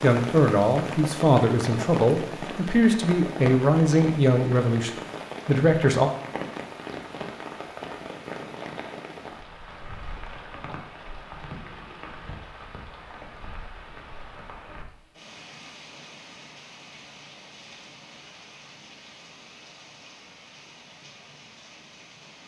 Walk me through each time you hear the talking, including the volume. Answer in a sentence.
The talking can be heard from 0.0 to 6.1 s, at a steady volume.